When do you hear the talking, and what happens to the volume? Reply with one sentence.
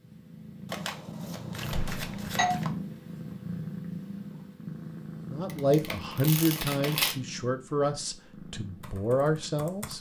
The talking can be heard from 5.2 to 9.9 s, getting quieter then louder.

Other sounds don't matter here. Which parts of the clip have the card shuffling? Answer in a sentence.
The card shuffling can be heard from 0.7 to 2.7 s and from 5.5 to 7.2 s.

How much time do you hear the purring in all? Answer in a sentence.
You can hear the purring for 10 seconds altogether.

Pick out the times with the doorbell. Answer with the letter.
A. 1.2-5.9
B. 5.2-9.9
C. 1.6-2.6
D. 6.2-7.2
C.